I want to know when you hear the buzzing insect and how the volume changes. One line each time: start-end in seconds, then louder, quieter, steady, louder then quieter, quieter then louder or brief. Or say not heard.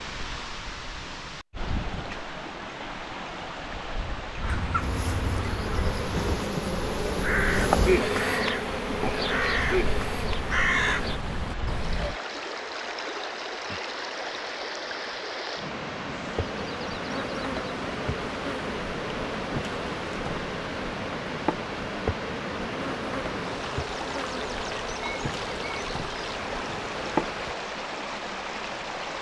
4.8-11.2 louder then quieter
16.1-27.6 steady.